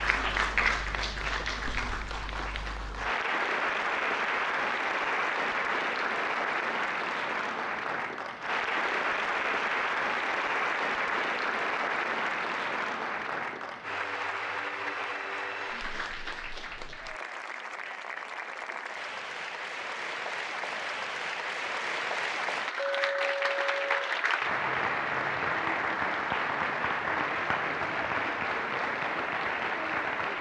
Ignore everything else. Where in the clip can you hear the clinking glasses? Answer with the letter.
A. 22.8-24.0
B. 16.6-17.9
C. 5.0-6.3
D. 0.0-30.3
A.